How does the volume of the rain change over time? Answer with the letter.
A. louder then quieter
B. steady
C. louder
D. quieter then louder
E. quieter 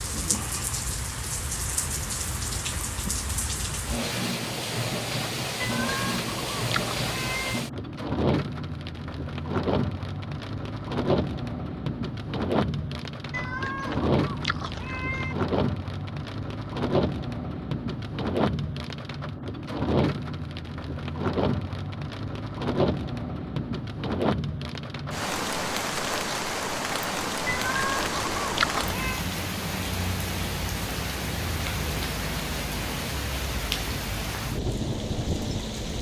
B.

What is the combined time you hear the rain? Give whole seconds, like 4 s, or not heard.
36 s.